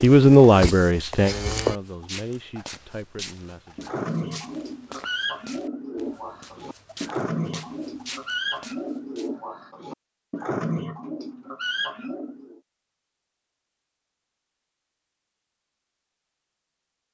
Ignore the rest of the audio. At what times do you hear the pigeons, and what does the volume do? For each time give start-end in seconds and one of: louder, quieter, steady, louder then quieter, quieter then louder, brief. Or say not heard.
3.8-12.6 steady.